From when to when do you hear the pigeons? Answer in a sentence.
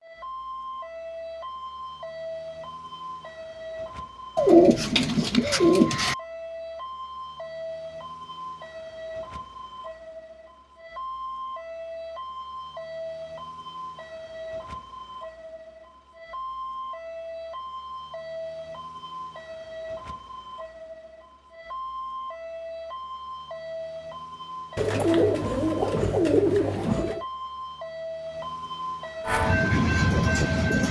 You can hear the pigeons from 4.3 to 6.2 s and from 24.8 to 27.2 s.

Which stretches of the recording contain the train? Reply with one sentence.
The train can be heard from 29.2 to 30.8 s.